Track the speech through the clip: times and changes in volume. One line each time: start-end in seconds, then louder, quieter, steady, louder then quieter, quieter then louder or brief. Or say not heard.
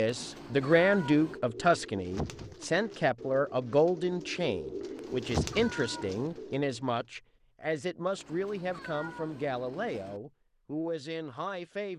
0.0-11.9 quieter.